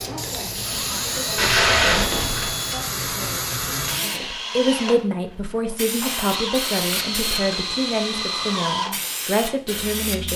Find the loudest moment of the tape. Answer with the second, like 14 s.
2 s.